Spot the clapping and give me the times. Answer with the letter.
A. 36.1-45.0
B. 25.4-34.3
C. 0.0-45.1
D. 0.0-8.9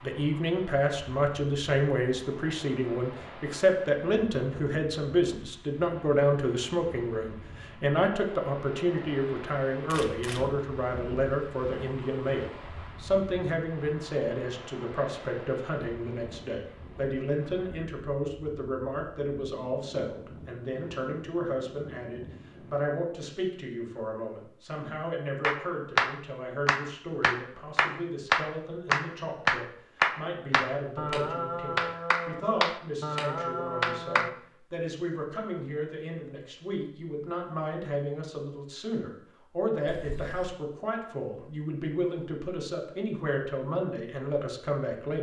B.